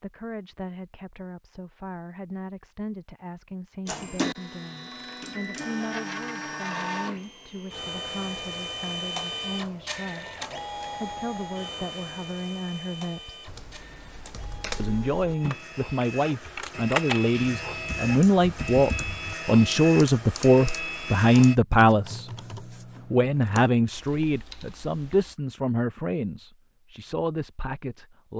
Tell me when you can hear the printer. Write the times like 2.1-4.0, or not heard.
3.9-21.6.